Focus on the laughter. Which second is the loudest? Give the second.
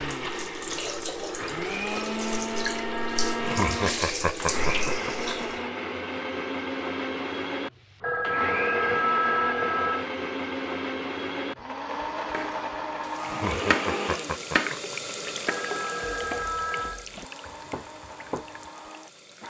4 s.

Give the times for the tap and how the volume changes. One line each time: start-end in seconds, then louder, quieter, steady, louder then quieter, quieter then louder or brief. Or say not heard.
0.0-5.7 steady
13.0-19.4 louder then quieter.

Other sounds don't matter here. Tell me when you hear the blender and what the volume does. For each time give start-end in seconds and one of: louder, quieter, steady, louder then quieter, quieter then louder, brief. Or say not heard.
0.0-19.4 quieter.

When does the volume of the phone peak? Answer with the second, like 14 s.
9 s.